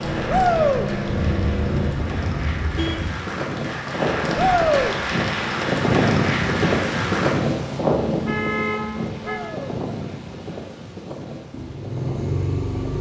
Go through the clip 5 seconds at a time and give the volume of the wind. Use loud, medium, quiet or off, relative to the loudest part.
medium, loud, quiet.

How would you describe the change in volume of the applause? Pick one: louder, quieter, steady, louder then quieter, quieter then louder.
louder.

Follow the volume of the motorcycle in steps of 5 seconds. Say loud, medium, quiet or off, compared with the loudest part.
loud, off, loud.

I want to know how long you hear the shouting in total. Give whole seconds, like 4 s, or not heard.
2 s.